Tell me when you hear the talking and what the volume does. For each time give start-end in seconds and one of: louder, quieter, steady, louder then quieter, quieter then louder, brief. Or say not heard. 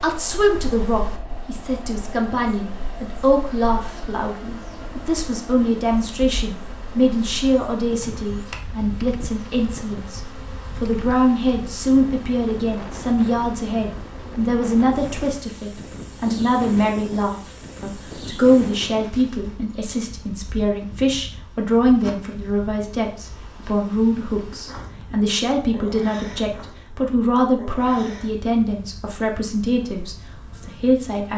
0.0-31.3 steady.